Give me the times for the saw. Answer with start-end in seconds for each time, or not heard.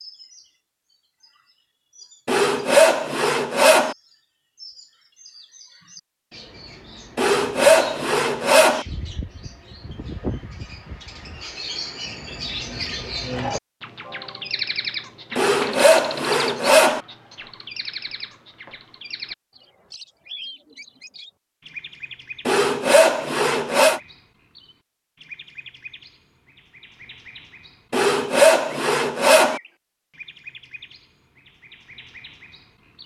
2.2-4.0, 7.2-8.8, 15.3-17.0, 22.4-24.0, 27.9-29.6.